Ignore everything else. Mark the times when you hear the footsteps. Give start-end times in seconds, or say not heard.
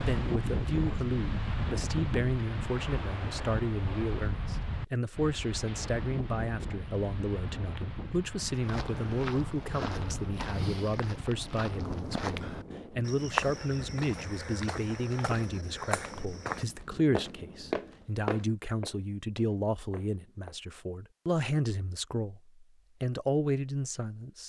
8.6-20.6.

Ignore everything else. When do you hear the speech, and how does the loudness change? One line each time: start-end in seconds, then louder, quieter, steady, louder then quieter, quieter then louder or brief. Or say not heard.
0.0-24.4 steady.